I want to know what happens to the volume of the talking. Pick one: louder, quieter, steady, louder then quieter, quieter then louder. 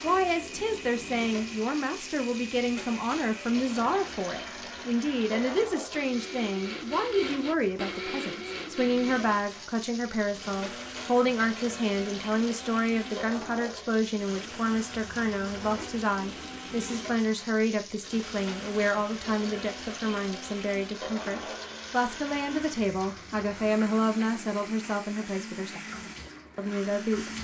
steady.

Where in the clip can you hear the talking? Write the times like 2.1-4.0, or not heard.
0.0-27.3.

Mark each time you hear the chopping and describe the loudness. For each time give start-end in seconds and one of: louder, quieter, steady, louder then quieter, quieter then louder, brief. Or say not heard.
not heard.